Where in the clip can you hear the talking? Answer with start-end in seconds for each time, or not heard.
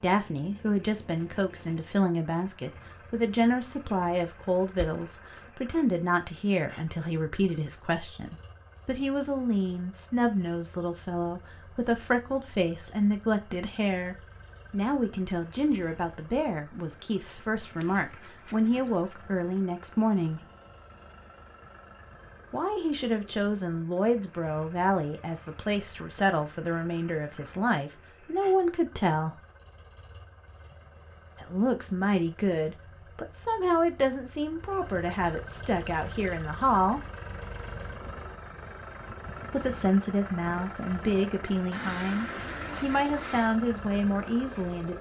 0.0-20.4, 22.5-29.4, 31.4-37.0, 39.4-44.9.